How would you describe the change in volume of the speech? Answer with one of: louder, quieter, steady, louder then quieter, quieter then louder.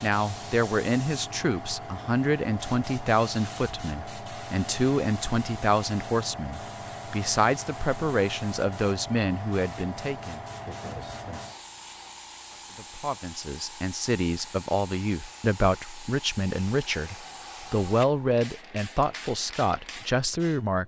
steady.